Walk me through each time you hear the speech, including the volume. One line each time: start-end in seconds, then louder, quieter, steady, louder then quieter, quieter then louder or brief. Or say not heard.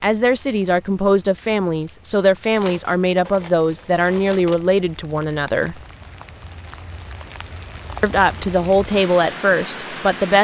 0.0-5.8 steady
8.0-10.3 brief.